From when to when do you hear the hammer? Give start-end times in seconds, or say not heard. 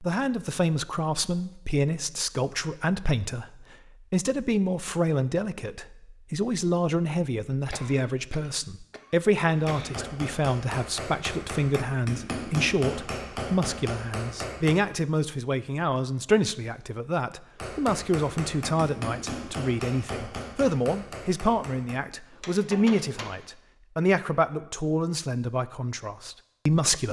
9.5-14.8, 17.6-23.4.